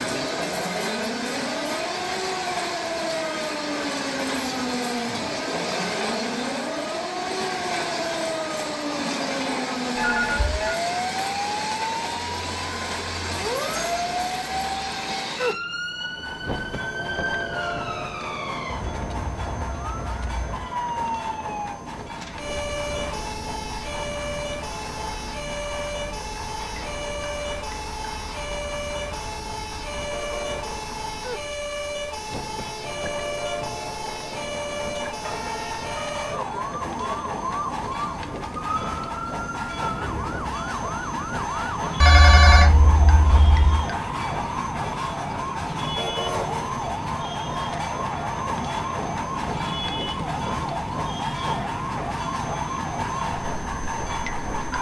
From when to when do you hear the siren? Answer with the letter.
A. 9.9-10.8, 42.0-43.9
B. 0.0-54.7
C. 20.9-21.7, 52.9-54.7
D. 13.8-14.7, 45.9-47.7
B.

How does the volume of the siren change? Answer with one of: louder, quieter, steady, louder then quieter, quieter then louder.
steady.